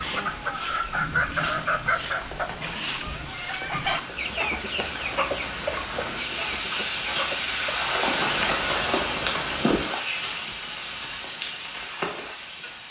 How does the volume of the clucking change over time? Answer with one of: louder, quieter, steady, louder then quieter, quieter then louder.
quieter.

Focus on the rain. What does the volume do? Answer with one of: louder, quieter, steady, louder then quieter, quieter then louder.
louder then quieter.